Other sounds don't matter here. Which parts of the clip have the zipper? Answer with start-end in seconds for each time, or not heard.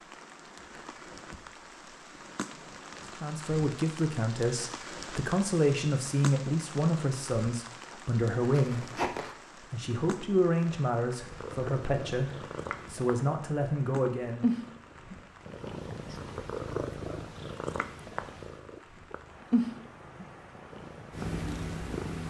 8.5-9.3.